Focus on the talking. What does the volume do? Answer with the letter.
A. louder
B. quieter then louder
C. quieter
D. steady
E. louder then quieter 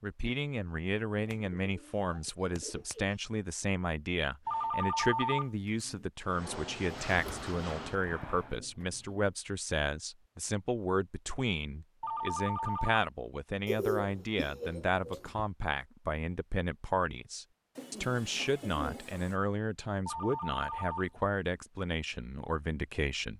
D.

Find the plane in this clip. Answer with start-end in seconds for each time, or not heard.
6.2-8.6.